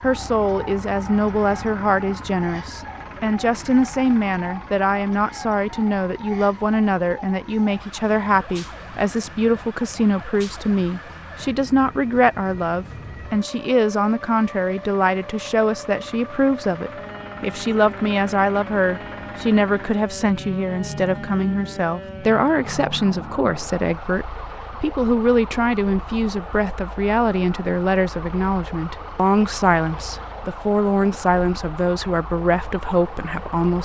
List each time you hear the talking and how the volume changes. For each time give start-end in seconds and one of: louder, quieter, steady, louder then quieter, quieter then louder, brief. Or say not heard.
0.0-33.8 steady.